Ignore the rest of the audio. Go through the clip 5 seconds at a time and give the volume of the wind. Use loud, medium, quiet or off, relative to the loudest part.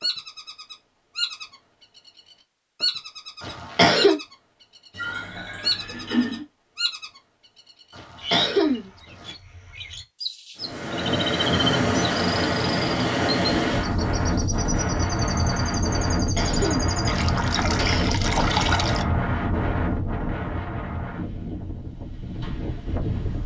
off, off, loud, loud, medium.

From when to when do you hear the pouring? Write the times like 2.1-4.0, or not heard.
4.9-6.5, 17.1-19.1.